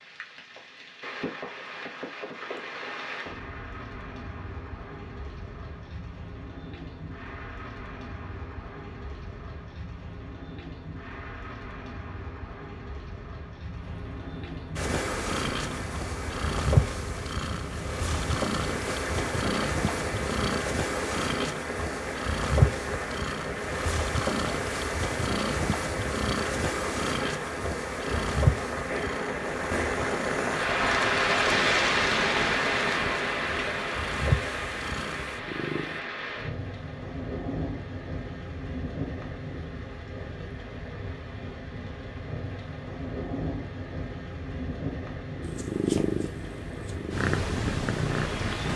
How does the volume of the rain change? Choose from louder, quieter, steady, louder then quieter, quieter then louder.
louder then quieter.